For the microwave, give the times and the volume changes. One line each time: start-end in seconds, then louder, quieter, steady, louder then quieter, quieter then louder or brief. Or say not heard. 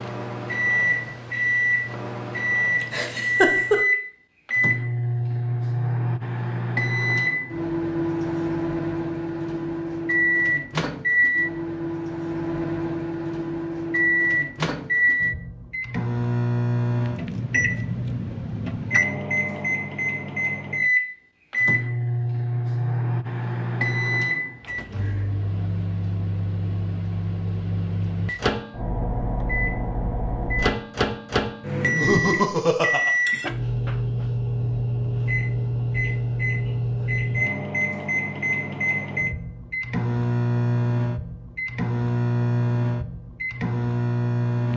0.0-44.7 steady.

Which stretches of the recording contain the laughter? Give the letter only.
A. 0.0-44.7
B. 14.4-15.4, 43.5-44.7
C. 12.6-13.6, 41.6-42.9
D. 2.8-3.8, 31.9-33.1
D.